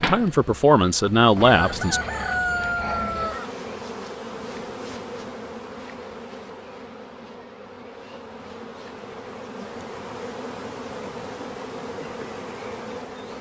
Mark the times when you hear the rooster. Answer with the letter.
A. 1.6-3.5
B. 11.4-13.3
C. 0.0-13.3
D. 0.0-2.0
A.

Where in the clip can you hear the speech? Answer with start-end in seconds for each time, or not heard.
0.0-2.0.